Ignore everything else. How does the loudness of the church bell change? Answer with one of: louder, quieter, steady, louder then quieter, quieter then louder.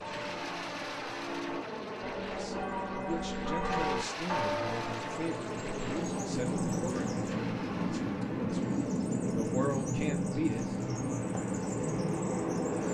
louder.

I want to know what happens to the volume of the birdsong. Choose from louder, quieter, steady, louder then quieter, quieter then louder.
louder.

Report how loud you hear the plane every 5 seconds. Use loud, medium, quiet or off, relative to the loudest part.
loud, loud, medium.